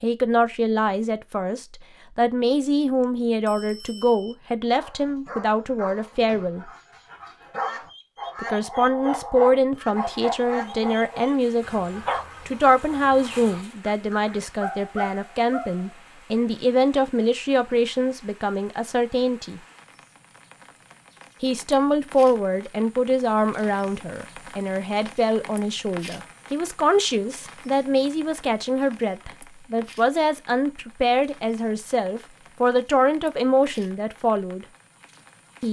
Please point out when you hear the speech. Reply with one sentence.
You can hear the speech from 0.0 to 6.7 s, from 8.4 to 19.6 s and from 21.4 to 34.6 s.